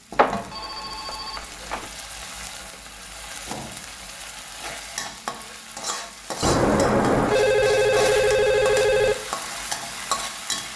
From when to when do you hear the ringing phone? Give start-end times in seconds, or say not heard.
0.1-1.9, 6.4-9.2.